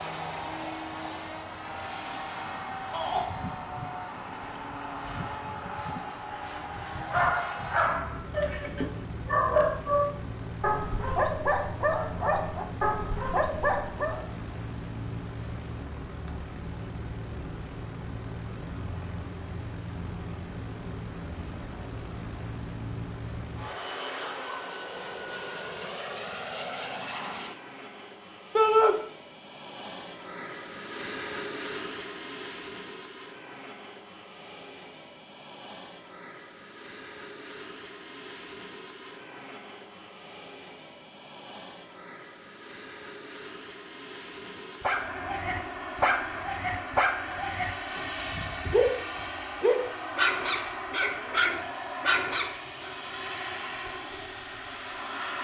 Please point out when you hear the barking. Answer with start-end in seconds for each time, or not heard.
7.1-14.2, 44.8-52.9.